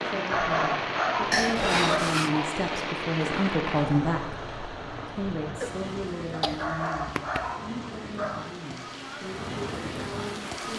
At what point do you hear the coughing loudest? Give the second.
2 s.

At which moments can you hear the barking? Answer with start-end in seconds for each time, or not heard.
0.1-2.6, 6.4-8.7.